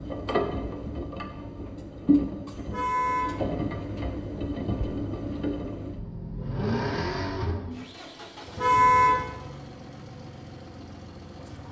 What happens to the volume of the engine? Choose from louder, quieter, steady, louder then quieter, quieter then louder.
quieter.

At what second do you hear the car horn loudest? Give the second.
9 s.